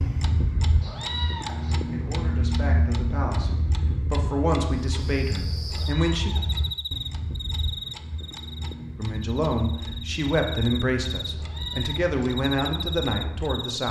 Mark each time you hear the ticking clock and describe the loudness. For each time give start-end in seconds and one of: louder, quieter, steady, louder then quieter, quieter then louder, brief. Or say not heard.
0.0-13.6 quieter.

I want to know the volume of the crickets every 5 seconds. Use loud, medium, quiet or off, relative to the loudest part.
off, loud, loud.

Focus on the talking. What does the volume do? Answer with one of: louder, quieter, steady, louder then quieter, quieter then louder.
louder.